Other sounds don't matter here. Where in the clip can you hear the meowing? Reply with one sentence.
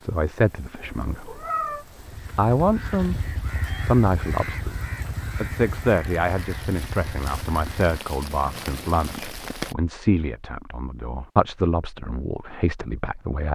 You can hear the meowing from 0.8 to 1.9 s.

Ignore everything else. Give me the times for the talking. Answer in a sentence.
The talking can be heard from 0.0 to 1.4 s, from 2.4 to 3.1 s and from 3.8 to 13.4 s.